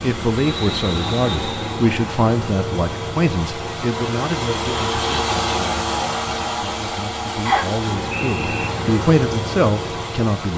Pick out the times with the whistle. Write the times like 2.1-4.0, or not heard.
0.5-1.7, 7.5-8.7.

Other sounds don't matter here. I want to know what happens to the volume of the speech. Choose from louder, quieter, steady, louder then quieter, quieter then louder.
quieter then louder.